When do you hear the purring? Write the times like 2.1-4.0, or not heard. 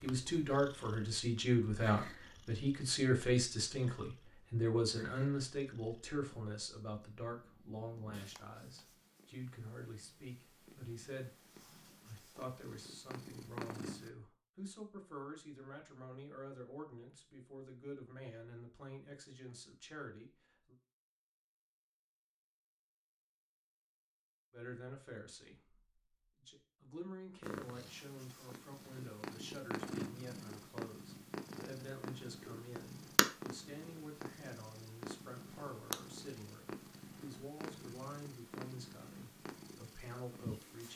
0.0-14.1, 27.4-40.9.